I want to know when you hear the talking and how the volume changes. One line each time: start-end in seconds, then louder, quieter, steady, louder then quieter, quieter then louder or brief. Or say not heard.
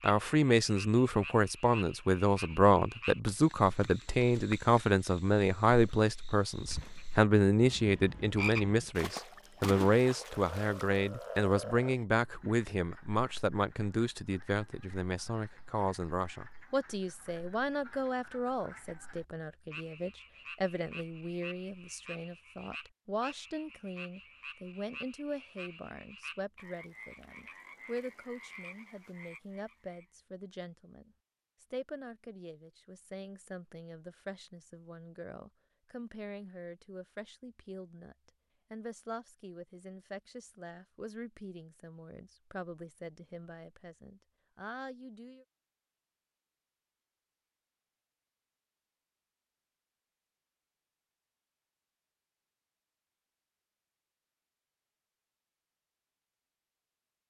0.0-45.5 quieter.